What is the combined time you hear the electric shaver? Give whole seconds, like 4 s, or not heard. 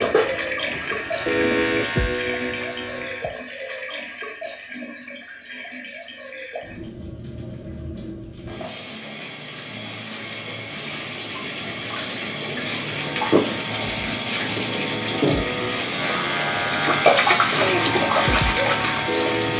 10 s.